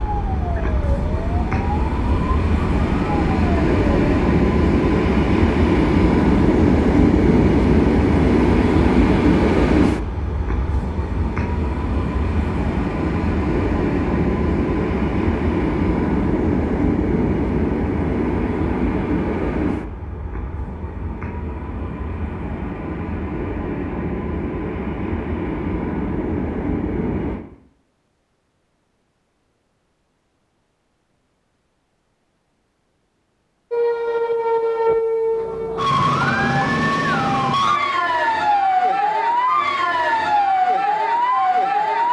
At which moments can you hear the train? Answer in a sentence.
The train can be heard from 0.0 to 27.4 s.